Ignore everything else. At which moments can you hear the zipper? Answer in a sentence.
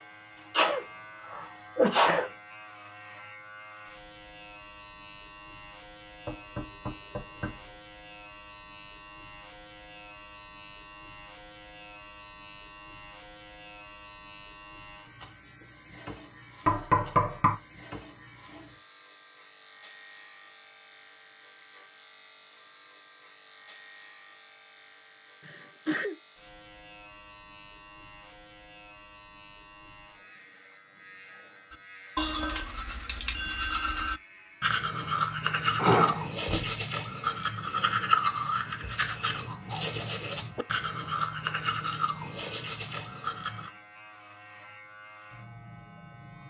You can't hear the zipper here.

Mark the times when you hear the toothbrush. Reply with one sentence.
The toothbrush can be heard from 31.7 to 43.7 s.